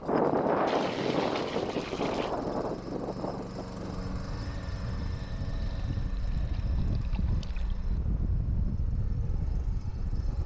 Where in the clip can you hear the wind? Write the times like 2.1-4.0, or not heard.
0.0-10.4.